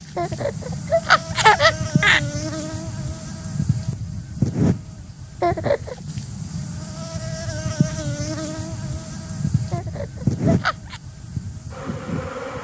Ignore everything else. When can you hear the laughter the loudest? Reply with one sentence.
The volume of the laughter peaks at 2 seconds.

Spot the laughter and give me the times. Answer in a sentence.
You can hear the laughter from 0.1 to 2.2 s, from 5.4 to 6.0 s and from 9.7 to 11.0 s.